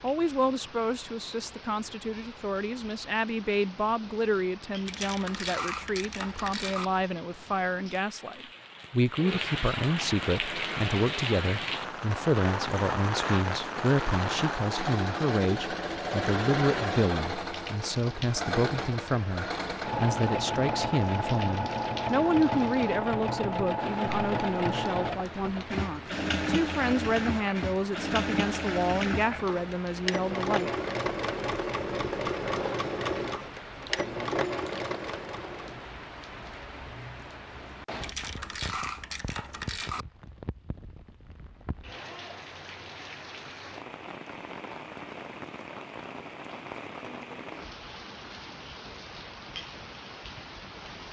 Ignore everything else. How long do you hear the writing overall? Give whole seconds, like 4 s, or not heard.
not heard.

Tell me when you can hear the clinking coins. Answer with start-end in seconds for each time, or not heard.
4.8-6.8, 38.0-40.0.